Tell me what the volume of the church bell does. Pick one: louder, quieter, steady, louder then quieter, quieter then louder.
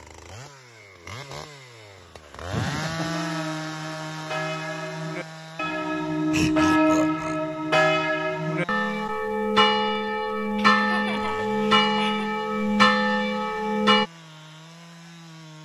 louder.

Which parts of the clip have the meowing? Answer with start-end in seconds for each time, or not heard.
not heard.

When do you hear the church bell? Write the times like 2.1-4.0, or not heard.
3.0-14.1.